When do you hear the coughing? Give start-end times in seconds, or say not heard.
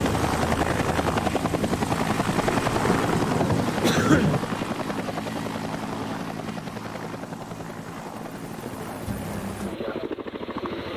3.8-4.4.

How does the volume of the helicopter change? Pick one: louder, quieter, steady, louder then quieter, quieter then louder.
quieter.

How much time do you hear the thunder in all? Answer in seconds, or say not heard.
2 s.